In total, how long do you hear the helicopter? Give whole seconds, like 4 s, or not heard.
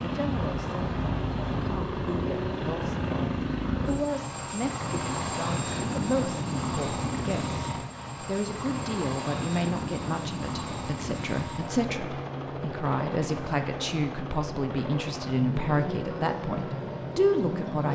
18 s.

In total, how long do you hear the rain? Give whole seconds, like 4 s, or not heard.
not heard.